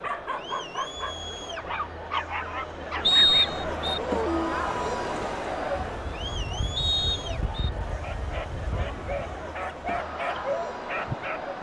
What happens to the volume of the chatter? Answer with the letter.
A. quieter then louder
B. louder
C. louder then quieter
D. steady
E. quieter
C.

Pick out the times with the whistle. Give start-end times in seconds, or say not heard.
3.0-4.0, 6.8-7.7.